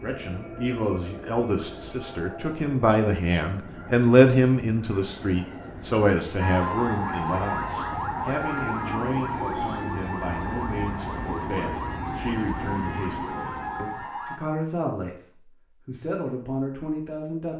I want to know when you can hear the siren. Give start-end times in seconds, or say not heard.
6.3-14.4.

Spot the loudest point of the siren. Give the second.
7 s.